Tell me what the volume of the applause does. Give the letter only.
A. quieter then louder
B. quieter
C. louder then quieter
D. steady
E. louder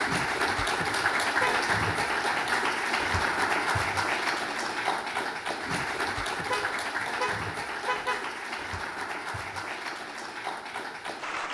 B.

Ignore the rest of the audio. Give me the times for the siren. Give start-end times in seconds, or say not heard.
not heard.